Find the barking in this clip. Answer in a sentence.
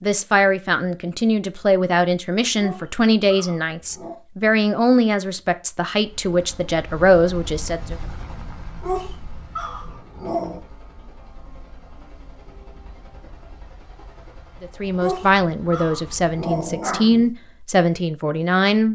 The barking can be heard from 2.5 to 4.2 s, from 8.8 to 10.7 s and from 14.9 to 17.3 s.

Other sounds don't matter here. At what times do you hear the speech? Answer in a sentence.
The speech can be heard from 0.0 to 8.0 s and from 14.6 to 18.8 s.